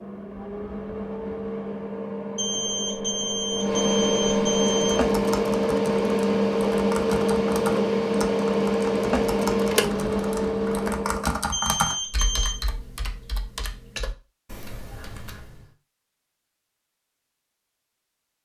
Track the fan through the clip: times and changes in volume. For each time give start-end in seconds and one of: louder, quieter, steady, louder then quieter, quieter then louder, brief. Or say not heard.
0.0-11.6 louder.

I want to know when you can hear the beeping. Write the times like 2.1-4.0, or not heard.
2.4-5.0, 11.5-12.6.